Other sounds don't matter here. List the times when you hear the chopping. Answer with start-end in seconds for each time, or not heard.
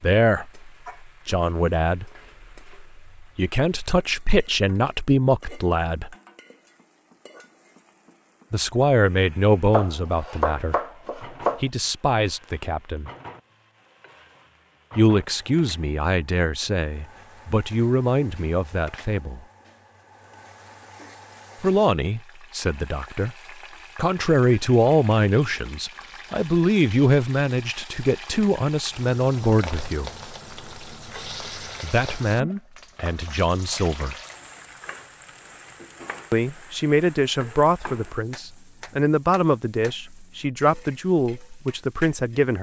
9.7-11.6.